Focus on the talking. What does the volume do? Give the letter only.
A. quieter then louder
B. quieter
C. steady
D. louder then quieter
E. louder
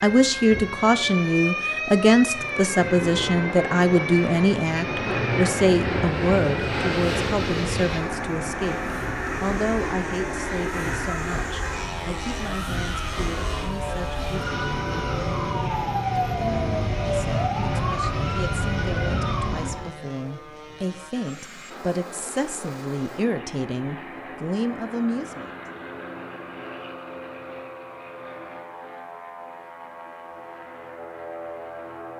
A.